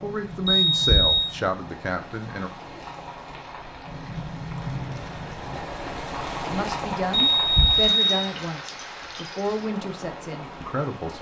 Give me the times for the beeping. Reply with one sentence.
The beeping can be heard from 0.5 to 1.3 s and from 7.1 to 8.3 s.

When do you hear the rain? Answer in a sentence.
The rain can be heard from 0.0 to 11.1 s.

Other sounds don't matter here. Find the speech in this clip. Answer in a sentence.
The speech can be heard from 0.0 to 2.5 s and from 6.5 to 11.1 s.